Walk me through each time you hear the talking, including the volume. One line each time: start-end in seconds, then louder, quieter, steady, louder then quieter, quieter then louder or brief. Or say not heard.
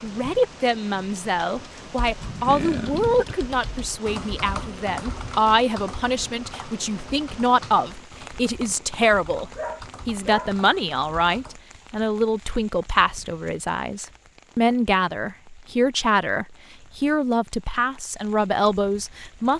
0.0-19.5 steady.